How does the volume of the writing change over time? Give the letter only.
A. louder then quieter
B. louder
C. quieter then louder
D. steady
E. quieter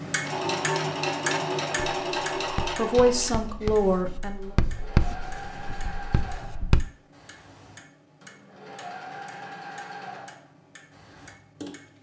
A.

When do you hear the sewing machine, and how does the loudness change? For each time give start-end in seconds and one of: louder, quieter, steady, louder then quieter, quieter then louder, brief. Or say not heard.
0.0-11.9 quieter.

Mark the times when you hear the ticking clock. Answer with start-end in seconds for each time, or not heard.
0.0-11.9.